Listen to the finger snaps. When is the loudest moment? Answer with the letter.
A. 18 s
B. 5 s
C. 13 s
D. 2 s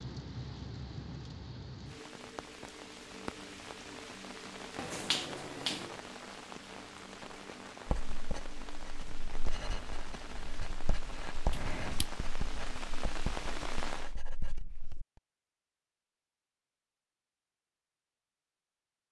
B.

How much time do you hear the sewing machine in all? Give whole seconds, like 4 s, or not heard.
not heard.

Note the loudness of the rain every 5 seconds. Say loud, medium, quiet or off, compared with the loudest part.
loud, loud, loud, off.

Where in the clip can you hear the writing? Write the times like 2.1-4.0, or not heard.
7.8-15.1.